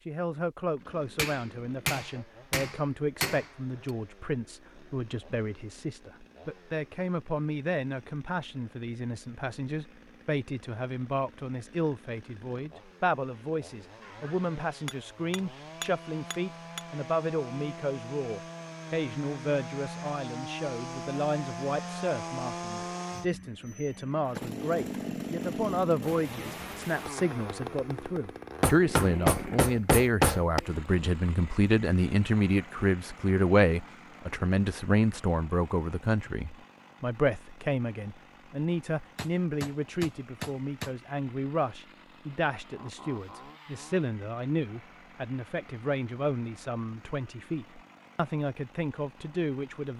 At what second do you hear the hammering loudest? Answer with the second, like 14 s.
30 s.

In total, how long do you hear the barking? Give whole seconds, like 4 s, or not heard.
not heard.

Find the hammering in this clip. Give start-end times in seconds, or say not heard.
1.1-3.5, 14.8-16.8, 28.6-30.6, 39.1-40.9.